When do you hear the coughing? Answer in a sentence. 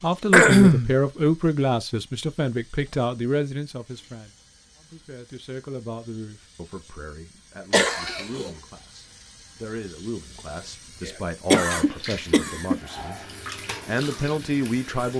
You can hear the coughing from 0.3 to 0.9 s, from 7.7 to 8.5 s and from 11.1 to 12.8 s.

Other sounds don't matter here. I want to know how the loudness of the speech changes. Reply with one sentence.
The volume of the speech goes down, then up.